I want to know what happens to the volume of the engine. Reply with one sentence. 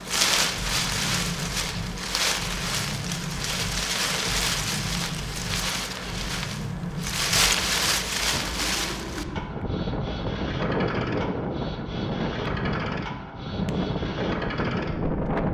The volume of the engine stays about the same.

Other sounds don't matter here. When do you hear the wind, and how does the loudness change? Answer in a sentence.
You can hear the wind from 0.0 to 15.5 s, at a steady volume.